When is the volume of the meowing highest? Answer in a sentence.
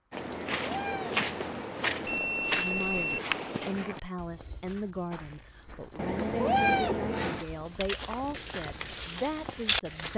The volume of the meowing peaks at 7 seconds.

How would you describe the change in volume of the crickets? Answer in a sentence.
The volume of the crickets goes up, then down.